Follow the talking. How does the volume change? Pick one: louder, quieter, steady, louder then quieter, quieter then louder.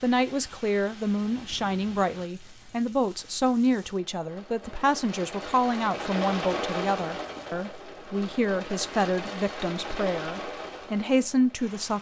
steady.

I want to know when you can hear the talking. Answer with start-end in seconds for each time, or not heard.
0.0-11.9.